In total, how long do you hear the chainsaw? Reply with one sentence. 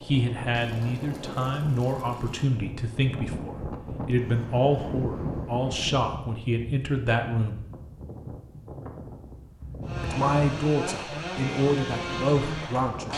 The chainsaw can be heard for 3 seconds in total.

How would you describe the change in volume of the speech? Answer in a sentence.
The loudness of the speech stays about the same.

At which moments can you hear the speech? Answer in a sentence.
The speech can be heard from 0.0 to 7.6 s and from 10.0 to 13.1 s.